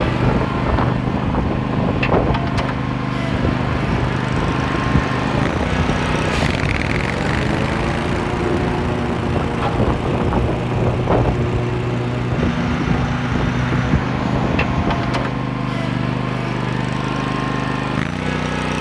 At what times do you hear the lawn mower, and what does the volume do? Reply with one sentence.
You can hear the lawn mower from 0.0 to 18.7 s, at a steady volume.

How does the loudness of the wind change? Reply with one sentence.
The volume of the wind stays about the same.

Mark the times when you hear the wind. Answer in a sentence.
You can hear the wind from 0.0 to 15.5 s.